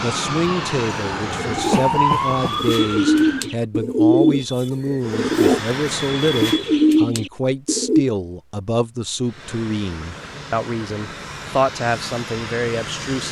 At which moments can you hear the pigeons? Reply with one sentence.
The pigeons can be heard from 1.3 to 8.1 s.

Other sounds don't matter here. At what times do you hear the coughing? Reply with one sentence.
You can hear the coughing from 1.7 to 2.6 s.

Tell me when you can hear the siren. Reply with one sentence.
You can hear the siren from 0.0 to 3.5 s.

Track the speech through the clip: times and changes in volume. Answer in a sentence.
The speech can be heard from 0.0 to 13.2 s, at a steady volume.